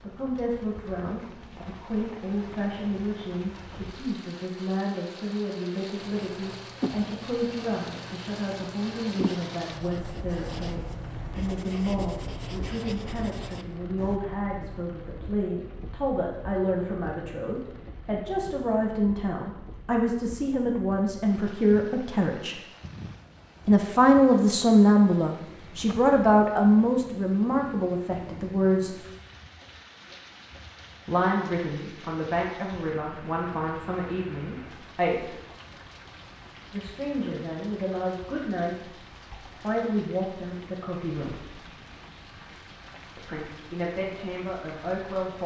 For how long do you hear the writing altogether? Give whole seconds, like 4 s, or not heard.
8 s.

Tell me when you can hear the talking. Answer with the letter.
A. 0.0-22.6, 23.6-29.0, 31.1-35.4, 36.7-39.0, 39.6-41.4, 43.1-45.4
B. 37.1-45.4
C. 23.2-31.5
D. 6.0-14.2
A.